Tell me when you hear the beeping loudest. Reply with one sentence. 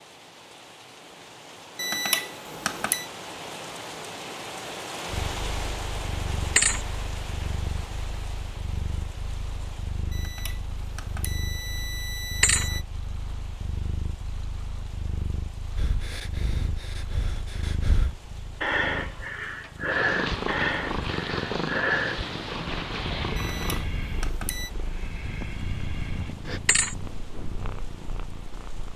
The volume of the beeping peaks at 2 seconds.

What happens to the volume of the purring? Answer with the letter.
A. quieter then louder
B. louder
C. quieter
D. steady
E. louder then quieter
E.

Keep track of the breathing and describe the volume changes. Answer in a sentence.
The volume of the breathing goes up, then down.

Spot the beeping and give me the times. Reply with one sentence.
The beeping can be heard from 1.8 to 3.1 s, from 10.1 to 12.8 s and from 23.4 to 24.7 s.